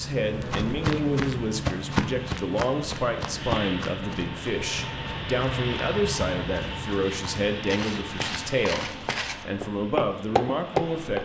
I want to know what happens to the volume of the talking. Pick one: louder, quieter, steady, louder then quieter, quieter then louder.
steady.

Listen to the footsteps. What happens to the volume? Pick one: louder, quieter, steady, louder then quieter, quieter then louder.
quieter then louder.